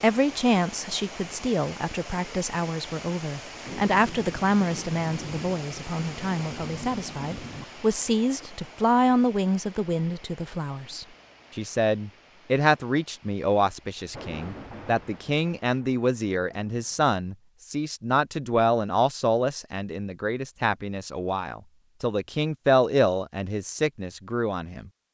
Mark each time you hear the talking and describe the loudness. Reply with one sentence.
You can hear the talking from 0.0 to 24.9 s, at a steady volume.